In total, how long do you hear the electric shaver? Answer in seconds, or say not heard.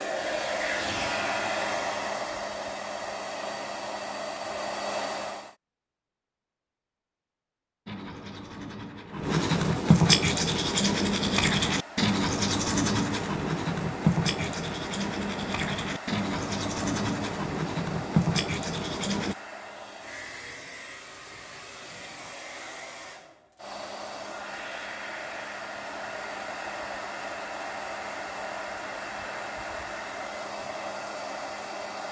not heard.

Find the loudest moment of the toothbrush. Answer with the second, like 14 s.
10 s.